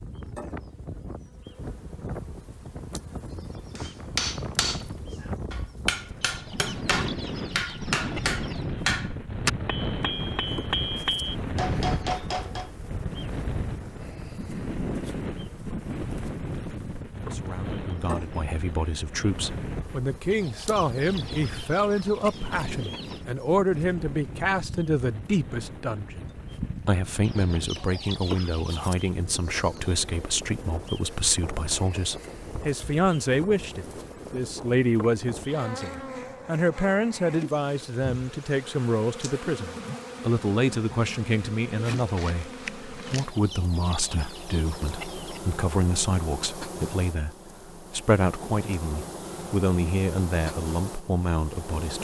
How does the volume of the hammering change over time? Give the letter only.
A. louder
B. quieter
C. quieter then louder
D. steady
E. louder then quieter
D.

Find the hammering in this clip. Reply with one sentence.
You can hear the hammering from 3.8 to 12.7 s.